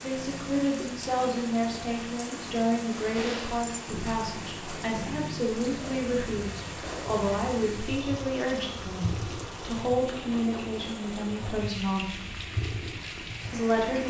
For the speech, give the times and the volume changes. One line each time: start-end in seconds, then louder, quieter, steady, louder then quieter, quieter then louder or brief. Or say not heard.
0.0-12.1 steady
13.5-14.0 brief.